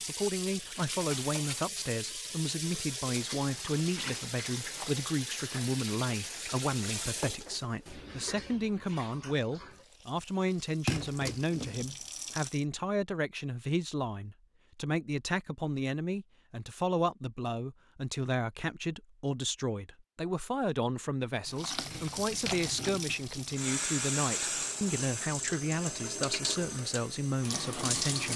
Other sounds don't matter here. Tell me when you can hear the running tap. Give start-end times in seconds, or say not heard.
0.0-12.7, 21.4-28.3.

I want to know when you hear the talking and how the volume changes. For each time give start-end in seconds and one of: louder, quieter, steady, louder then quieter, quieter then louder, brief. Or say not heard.
0.1-28.3 steady.